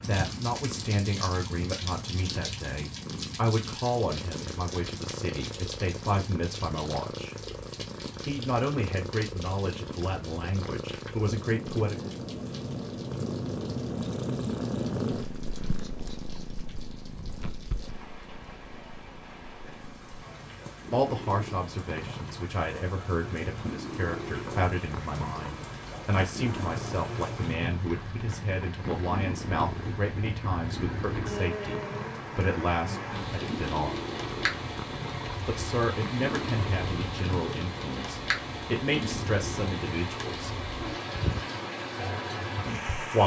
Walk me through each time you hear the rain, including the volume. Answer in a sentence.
You can hear the rain from 0.0 to 43.2 s, getting quieter then louder.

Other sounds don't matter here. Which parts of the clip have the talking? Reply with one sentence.
You can hear the talking from 0.1 to 7.3 s, from 8.2 to 12.1 s, from 20.9 to 34.0 s, from 35.5 to 40.6 s and from 42.6 to 43.2 s.